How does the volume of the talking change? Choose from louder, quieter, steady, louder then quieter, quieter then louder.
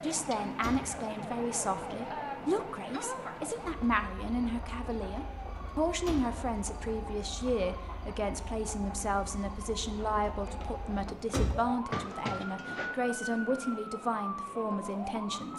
steady.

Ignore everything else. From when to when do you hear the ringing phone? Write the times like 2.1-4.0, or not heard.
11.9-12.9.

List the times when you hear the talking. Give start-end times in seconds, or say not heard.
0.0-15.5.